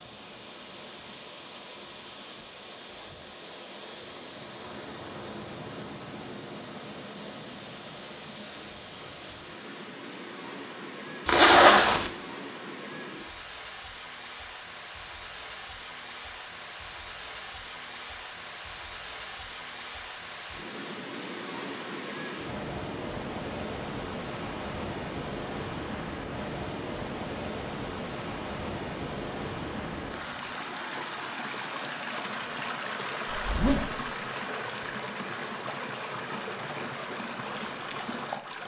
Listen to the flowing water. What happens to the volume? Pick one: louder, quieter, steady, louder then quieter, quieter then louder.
louder.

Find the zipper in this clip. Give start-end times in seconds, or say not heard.
11.2-12.1, 33.4-34.0.